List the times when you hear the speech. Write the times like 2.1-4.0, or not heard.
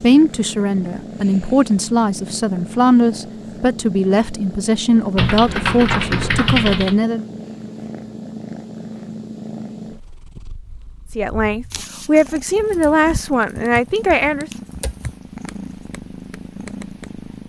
0.0-7.2, 11.2-14.5.